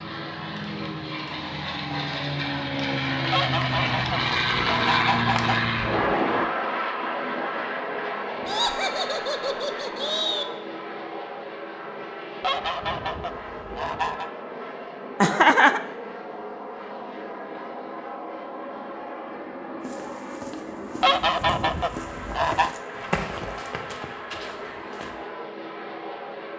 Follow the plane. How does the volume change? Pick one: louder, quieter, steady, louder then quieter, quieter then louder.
quieter.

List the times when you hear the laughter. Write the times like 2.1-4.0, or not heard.
8.4-10.4, 15.2-15.8.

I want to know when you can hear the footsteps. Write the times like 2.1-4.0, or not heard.
19.8-25.2.